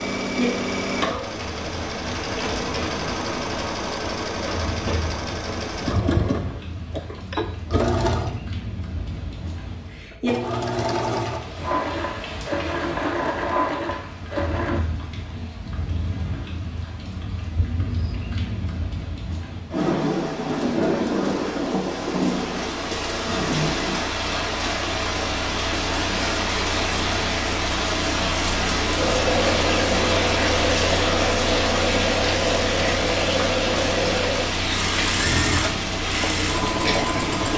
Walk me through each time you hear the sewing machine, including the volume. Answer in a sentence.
The sewing machine can be heard from 0.0 to 14.8 s, at a steady volume; and from 28.9 to 37.5 s, at a steady volume.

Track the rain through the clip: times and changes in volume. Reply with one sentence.
The rain can be heard from 0.2 to 37.5 s, getting louder.